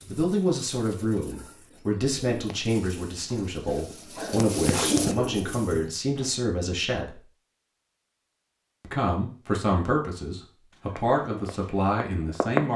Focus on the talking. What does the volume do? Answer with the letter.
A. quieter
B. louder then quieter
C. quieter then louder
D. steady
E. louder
D.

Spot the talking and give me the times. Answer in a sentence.
You can hear the talking from 0.1 to 7.2 s and from 8.8 to 12.7 s.